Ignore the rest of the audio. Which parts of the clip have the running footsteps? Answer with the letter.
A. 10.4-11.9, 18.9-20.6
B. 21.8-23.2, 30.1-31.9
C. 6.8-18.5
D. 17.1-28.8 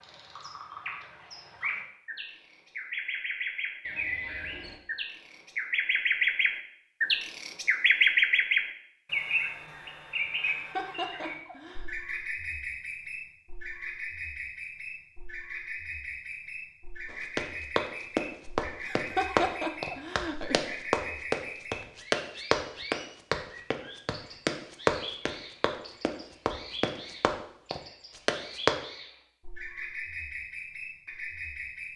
D.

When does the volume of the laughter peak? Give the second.
19 s.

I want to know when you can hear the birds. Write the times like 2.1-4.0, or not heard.
0.0-31.9.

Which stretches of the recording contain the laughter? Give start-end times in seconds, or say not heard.
10.4-11.9, 18.9-20.6.